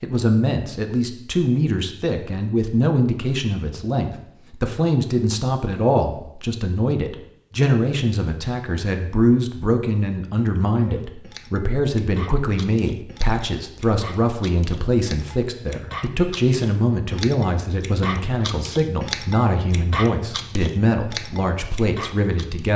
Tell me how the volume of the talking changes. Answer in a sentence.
The volume of the talking stays about the same.